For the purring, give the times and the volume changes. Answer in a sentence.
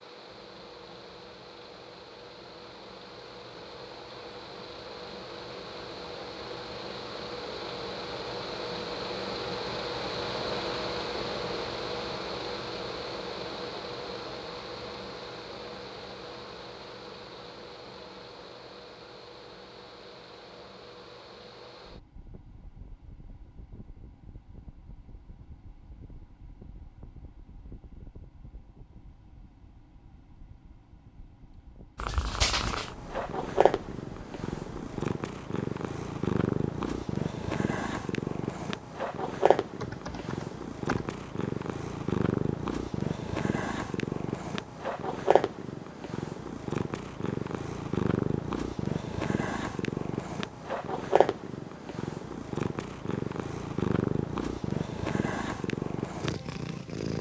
You can hear the purring from 31.9 to 57.1 s, at a steady volume.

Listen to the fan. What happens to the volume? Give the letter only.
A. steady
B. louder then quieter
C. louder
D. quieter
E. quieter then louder
B.